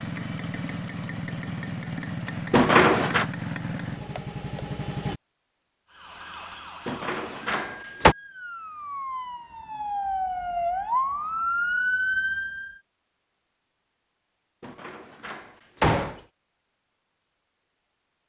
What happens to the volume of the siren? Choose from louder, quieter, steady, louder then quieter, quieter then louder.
louder.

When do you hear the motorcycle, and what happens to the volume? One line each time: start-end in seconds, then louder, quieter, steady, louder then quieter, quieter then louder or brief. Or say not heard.
0.0-5.2 steady.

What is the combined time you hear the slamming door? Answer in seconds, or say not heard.
4 s.